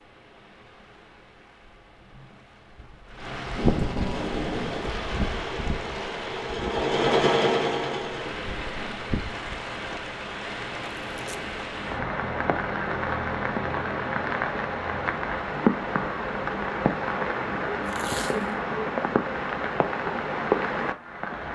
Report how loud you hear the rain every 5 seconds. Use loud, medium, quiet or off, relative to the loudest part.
medium, medium, loud, loud, loud.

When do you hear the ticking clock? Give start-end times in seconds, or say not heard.
not heard.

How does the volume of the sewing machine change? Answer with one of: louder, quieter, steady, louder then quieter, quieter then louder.
louder.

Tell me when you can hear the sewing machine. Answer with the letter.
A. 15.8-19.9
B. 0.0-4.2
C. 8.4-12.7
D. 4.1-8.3
D.